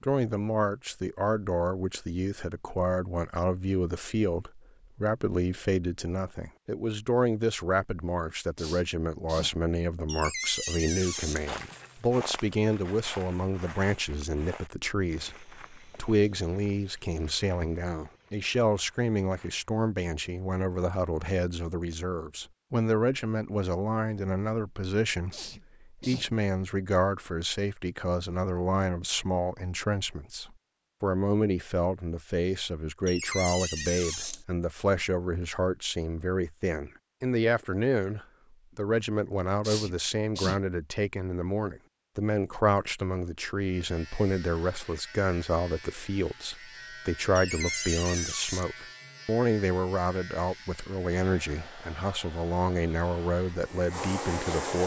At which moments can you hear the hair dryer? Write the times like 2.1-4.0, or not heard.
51.1-54.8.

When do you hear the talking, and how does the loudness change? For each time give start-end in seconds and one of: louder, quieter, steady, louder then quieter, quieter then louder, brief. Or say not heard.
0.0-54.8 steady.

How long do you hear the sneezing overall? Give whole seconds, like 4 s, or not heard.
3 s.